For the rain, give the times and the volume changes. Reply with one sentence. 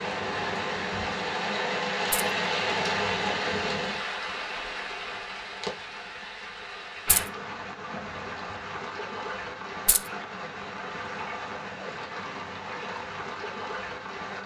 The rain can be heard from 0.0 to 14.4 s, getting quieter.